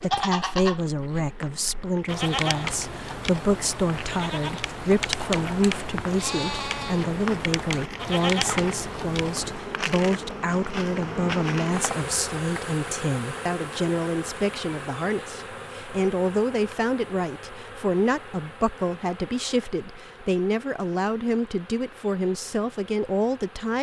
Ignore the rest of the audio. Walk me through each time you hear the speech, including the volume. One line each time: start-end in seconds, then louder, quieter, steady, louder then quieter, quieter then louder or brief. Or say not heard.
0.0-23.7 steady.